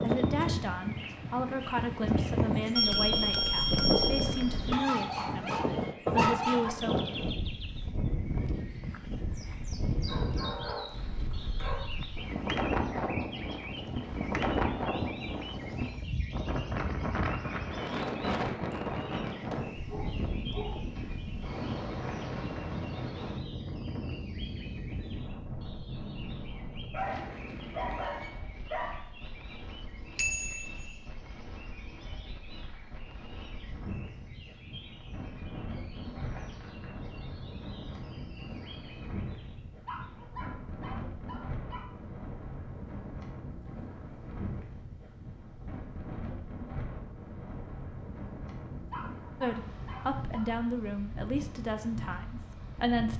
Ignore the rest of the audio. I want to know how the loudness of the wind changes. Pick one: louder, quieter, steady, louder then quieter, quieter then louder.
quieter.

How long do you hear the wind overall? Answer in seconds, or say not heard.
53 s.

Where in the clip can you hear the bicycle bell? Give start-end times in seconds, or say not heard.
2.8-4.8, 30.1-30.9.